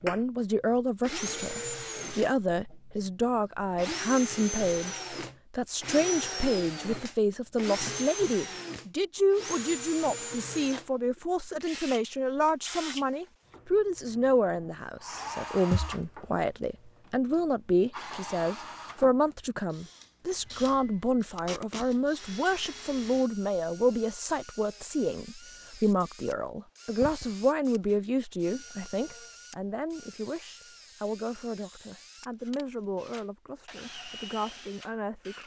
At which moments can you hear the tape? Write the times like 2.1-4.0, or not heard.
21.4-21.9.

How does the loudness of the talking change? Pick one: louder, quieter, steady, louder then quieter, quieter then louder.
quieter.